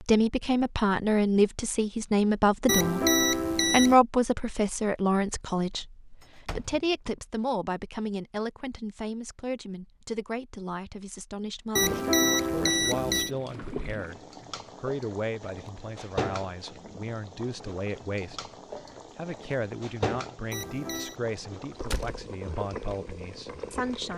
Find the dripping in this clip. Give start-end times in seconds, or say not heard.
not heard.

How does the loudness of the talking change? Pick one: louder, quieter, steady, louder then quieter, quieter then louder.
quieter.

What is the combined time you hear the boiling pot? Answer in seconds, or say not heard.
12 s.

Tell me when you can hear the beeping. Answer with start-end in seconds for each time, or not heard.
2.6-4.0, 11.8-13.3, 20.5-21.2.